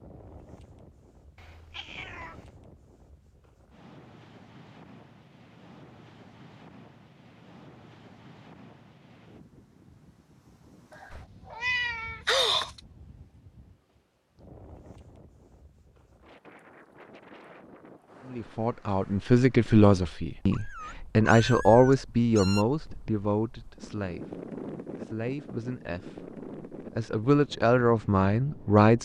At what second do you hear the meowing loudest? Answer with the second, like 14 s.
12 s.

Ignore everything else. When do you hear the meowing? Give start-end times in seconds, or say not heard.
1.4-2.5, 10.9-12.8, 20.5-22.6.